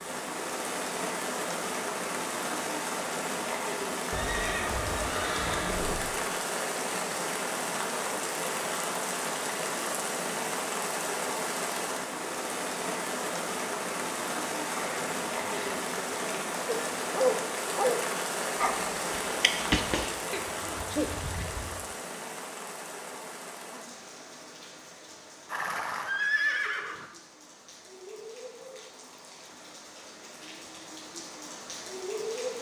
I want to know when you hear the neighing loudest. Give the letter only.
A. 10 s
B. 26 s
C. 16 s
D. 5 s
B.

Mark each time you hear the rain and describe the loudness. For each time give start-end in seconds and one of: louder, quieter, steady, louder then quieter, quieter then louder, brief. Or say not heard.
0.0-32.5 quieter.